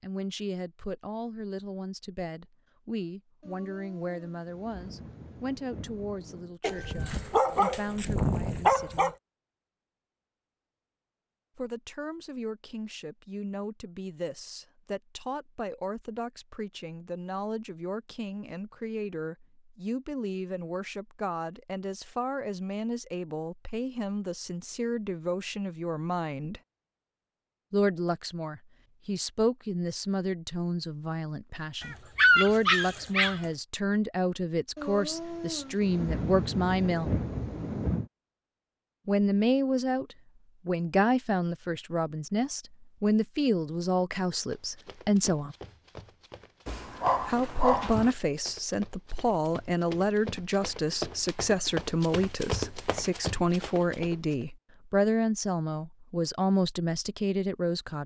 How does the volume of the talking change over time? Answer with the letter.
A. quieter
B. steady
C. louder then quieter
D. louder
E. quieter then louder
D.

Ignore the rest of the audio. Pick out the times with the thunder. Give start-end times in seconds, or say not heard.
3.4-6.5, 34.8-38.1.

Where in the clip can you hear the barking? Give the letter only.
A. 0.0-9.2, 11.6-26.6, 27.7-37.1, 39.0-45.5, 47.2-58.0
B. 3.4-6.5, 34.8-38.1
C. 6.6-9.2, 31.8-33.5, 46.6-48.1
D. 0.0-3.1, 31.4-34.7
C.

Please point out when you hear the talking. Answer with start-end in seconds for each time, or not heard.
0.0-9.2, 11.6-26.6, 27.7-37.1, 39.0-45.5, 47.2-58.0.